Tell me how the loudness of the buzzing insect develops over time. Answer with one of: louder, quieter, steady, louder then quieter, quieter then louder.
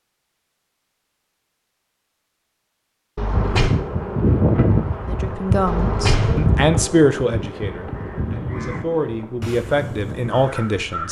quieter.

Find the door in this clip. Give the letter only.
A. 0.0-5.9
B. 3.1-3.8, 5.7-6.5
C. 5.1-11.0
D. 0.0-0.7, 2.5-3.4
B.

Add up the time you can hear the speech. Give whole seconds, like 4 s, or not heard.
6 s.